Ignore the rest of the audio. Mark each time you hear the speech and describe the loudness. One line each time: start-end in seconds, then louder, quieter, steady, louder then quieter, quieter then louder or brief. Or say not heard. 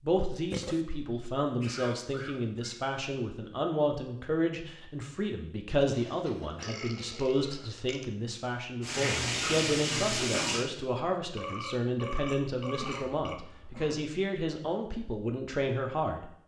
0.0-16.3 steady.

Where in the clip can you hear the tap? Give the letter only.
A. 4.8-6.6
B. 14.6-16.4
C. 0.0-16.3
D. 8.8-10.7
D.